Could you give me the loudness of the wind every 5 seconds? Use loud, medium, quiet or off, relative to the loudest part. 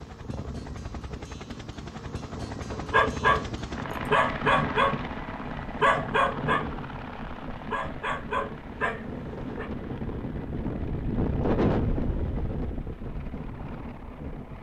medium, medium, loud.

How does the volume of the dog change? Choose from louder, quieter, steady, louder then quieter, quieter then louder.
quieter then louder.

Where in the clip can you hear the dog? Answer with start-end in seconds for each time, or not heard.
2.7-9.7.